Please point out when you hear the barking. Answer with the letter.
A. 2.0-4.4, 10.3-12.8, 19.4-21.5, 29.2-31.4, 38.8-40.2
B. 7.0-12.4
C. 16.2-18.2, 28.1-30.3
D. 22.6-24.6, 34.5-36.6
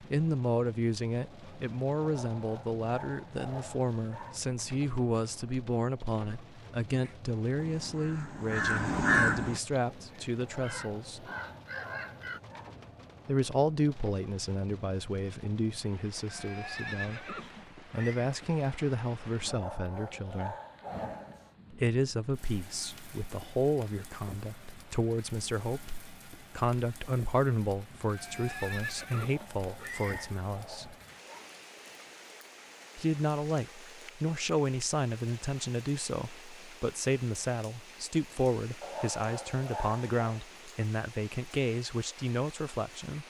A.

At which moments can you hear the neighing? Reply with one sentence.
The neighing can be heard from 16.2 to 18.2 s and from 28.1 to 30.3 s.